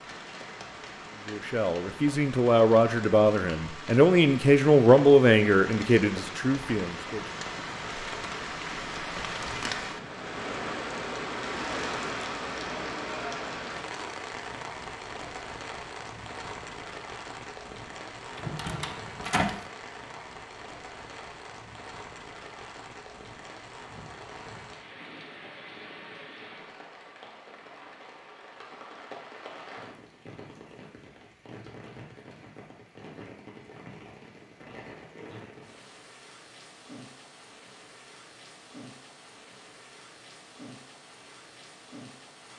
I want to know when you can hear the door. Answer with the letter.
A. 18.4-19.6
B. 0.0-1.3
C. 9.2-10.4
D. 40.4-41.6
A.